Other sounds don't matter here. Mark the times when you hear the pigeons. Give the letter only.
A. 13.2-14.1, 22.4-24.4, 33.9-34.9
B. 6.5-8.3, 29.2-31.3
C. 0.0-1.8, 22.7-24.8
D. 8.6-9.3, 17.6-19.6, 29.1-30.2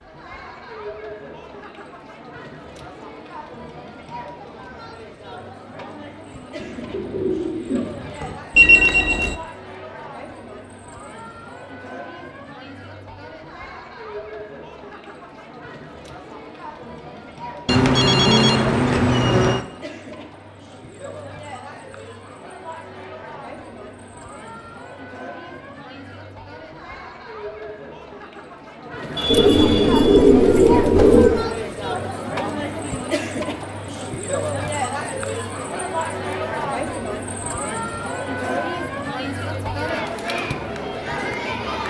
B.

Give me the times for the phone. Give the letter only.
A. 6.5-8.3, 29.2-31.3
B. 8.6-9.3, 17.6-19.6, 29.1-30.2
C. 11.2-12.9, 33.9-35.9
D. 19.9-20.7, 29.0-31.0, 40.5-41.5
B.